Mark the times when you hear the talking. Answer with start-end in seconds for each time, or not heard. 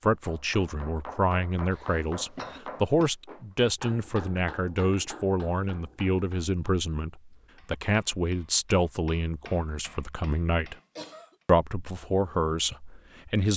0.0-10.8, 11.4-13.5.